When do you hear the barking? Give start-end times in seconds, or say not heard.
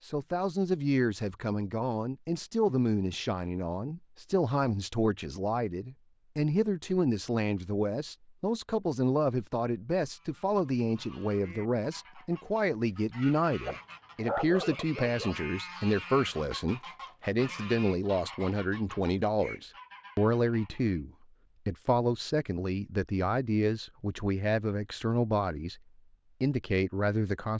13.7-15.3.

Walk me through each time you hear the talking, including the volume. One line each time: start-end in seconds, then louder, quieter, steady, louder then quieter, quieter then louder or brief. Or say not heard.
0.0-25.8 steady
26.4-27.5 brief.